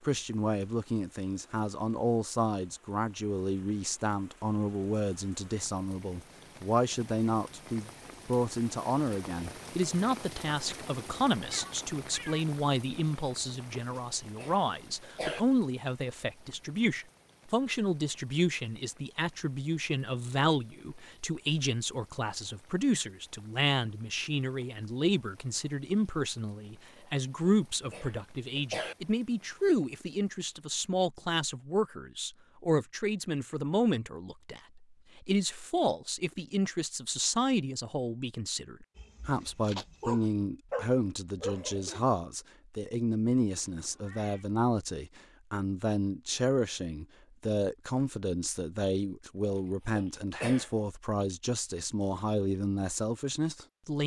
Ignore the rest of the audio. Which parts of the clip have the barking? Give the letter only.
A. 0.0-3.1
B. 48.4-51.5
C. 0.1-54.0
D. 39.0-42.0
D.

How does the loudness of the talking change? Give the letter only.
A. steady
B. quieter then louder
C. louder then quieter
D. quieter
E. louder
A.